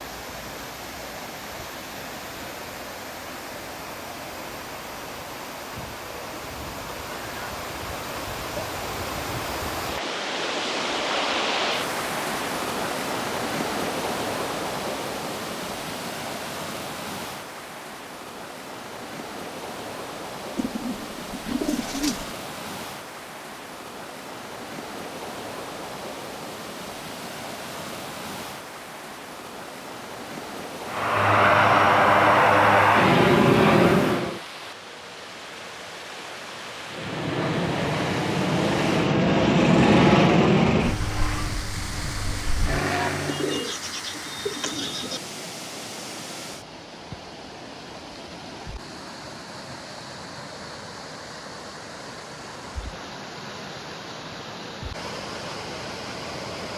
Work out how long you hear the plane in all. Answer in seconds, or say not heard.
10 s.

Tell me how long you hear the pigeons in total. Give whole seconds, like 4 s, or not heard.
4 s.